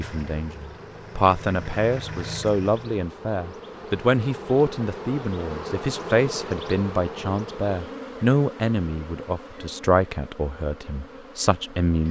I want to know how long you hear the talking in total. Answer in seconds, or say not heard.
12 s.